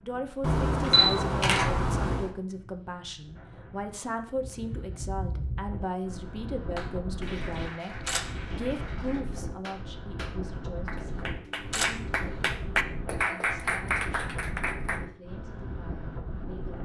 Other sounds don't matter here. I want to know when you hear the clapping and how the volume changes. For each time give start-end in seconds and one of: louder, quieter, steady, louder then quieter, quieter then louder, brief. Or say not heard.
6.8-15.1 louder.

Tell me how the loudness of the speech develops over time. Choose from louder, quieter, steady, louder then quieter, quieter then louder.
quieter.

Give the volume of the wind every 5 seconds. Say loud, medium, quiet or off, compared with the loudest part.
medium, loud, loud, loud.